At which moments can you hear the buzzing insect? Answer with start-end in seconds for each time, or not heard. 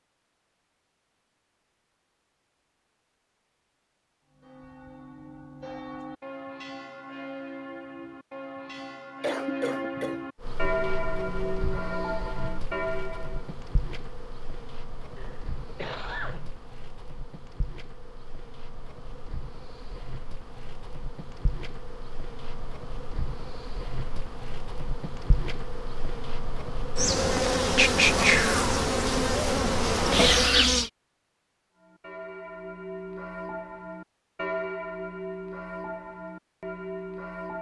10.4-30.9.